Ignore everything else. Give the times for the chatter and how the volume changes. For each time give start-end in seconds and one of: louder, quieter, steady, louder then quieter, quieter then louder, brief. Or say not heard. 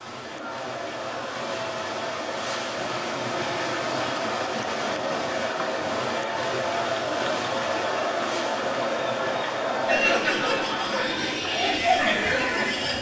0.1-12.9 louder.